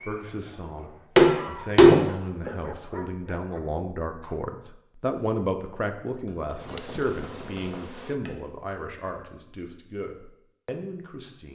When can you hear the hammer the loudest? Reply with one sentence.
The loudest moment of the hammer is at 2 seconds.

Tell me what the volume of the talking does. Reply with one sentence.
The loudness of the talking goes up, then down.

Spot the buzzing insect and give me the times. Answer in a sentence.
You can hear the buzzing insect from 6.5 to 8.2 s.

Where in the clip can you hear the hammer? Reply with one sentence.
You can hear the hammer from 1.1 to 2.5 s and from 6.2 to 8.5 s.